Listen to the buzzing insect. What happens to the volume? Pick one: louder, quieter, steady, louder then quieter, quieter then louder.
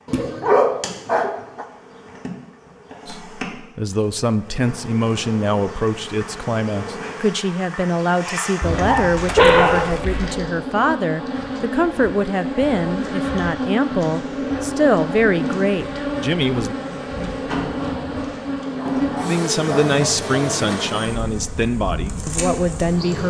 louder.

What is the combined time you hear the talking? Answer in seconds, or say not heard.
18 s.